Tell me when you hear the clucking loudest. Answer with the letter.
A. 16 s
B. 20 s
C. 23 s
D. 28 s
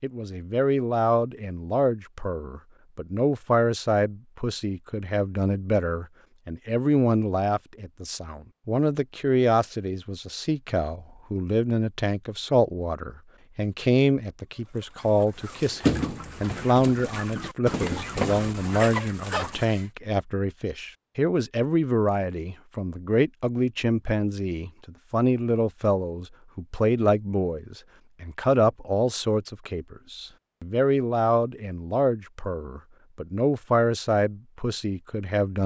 A.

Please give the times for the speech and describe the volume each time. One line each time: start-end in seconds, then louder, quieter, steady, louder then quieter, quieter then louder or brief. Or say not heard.
0.0-35.6 steady.